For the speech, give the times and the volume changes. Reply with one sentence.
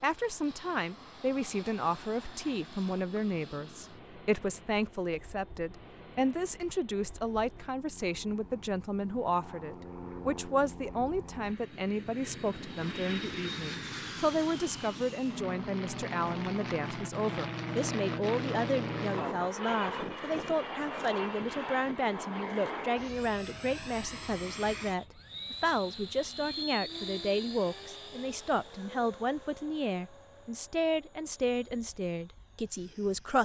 The speech can be heard from 0.0 to 33.4 s, at a steady volume.